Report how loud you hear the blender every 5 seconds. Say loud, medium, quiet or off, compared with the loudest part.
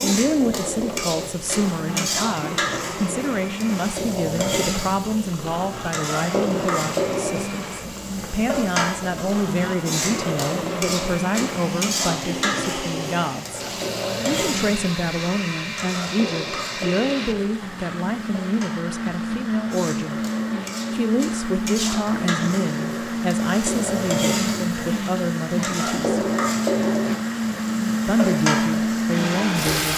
medium, medium, medium, medium, loud, loud.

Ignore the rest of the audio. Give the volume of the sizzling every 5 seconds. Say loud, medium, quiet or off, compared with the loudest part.
loud, loud, loud, medium, loud, loud.